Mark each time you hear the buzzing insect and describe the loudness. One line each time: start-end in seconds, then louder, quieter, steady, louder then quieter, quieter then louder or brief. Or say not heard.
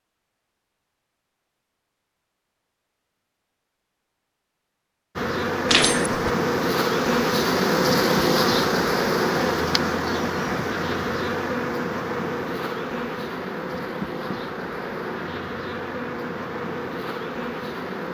5.2-18.0 quieter.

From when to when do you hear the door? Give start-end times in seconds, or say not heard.
5.7-6.3, 13.8-14.4.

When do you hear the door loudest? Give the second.
6 s.